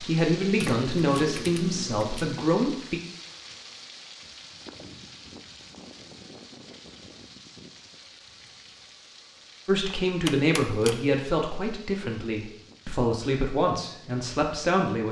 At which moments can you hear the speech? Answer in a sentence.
The speech can be heard from 0.0 to 3.0 s and from 9.7 to 15.0 s.